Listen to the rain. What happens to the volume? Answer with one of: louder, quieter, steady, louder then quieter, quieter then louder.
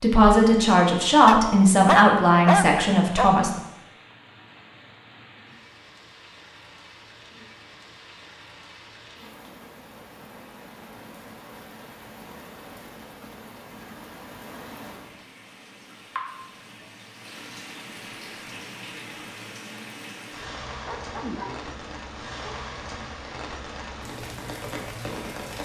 louder.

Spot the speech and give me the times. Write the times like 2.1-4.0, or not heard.
0.0-3.5.